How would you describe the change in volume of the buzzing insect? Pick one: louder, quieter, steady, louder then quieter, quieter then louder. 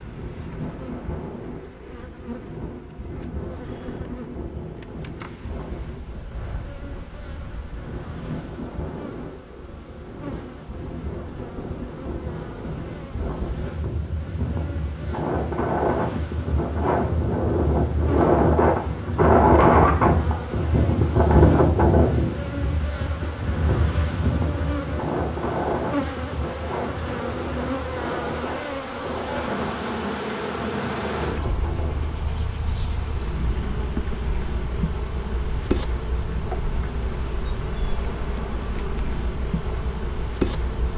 louder.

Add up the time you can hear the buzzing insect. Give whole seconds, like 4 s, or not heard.
41 s.